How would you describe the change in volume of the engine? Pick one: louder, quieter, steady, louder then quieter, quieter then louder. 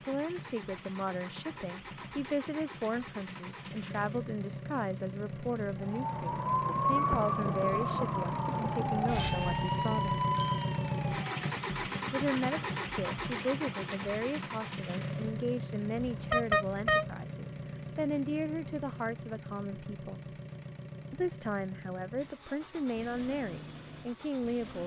louder then quieter.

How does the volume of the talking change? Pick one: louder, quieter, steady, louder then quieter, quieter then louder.
steady.